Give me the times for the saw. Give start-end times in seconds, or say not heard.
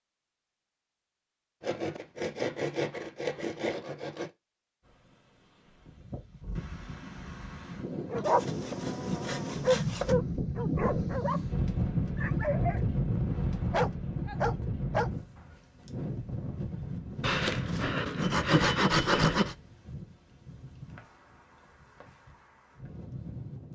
1.6-4.3, 8.2-10.2, 17.2-19.6.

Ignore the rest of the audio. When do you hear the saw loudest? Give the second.
19 s.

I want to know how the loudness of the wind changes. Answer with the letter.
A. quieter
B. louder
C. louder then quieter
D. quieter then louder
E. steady
C.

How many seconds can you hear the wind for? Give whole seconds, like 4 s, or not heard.
19 s.